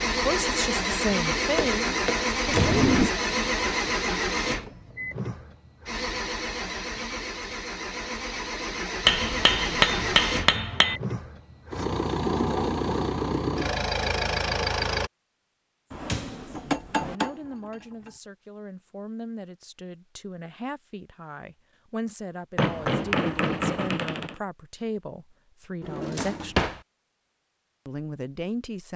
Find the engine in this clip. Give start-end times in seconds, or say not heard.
0.0-15.1.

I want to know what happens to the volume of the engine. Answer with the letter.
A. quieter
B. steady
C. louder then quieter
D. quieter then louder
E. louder
D.